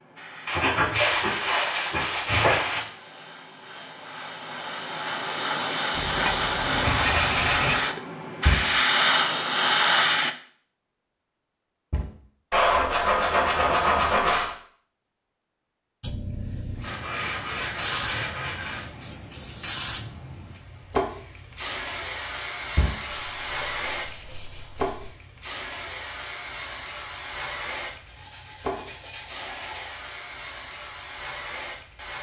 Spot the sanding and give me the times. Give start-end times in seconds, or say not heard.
0.5-2.9, 6.0-7.8, 12.5-14.6, 16.8-18.9, 23.1-25.1, 28.1-30.0.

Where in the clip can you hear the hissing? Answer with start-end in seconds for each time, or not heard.
0.0-10.3, 16.0-32.1.